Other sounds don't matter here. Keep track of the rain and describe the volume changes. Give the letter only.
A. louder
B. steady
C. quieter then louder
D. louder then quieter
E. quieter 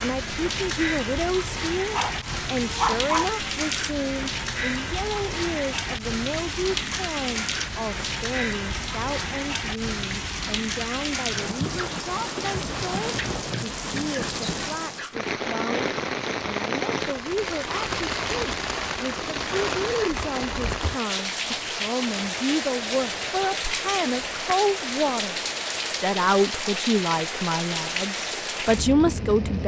B.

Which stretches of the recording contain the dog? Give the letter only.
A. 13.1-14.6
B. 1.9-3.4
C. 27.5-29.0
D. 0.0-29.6
B.